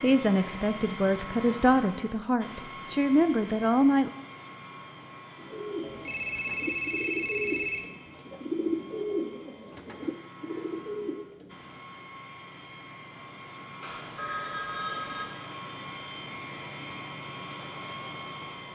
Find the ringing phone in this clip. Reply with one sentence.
You can hear the ringing phone from 5.8 to 7.8 s and from 13.8 to 15.3 s.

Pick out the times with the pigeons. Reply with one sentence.
The pigeons can be heard from 5.3 to 11.8 s.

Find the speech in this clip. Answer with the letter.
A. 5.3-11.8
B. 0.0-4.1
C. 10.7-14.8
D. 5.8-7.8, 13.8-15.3
B.